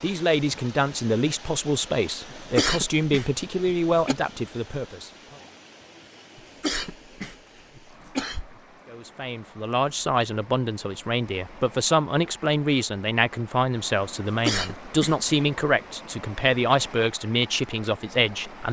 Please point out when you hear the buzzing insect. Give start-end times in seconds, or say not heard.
not heard.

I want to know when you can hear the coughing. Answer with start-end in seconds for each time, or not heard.
2.3-4.2, 6.3-8.6, 14.4-15.2.